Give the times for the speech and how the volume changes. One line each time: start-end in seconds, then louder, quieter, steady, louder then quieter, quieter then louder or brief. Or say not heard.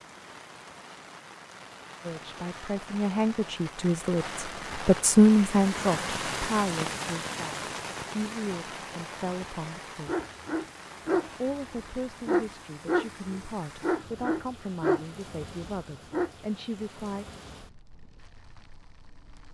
2.0-10.2 louder then quieter
11.2-17.2 steady.